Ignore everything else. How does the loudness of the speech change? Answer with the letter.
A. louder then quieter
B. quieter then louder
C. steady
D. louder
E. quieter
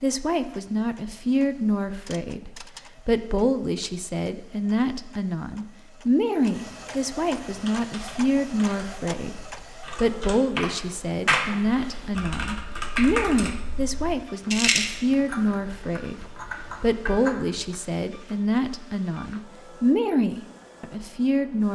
C.